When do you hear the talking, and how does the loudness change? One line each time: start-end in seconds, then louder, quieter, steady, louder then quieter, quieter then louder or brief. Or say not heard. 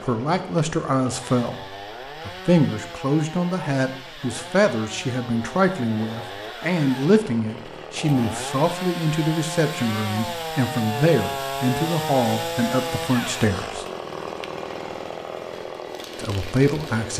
0.0-13.8 steady
16.1-17.1 brief.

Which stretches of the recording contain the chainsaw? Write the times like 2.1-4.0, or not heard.
0.0-17.1.